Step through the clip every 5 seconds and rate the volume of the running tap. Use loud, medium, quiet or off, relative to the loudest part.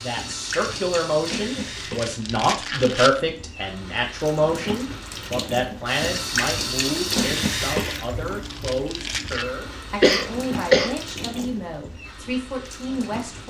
medium, loud, medium.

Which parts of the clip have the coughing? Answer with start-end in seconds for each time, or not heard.
10.0-10.9.